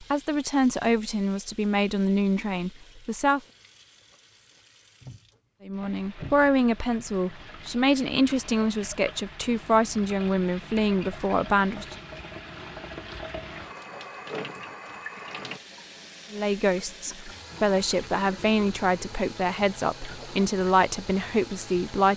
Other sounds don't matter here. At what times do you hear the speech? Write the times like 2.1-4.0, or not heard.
0.0-3.4, 5.7-11.9, 16.3-22.1.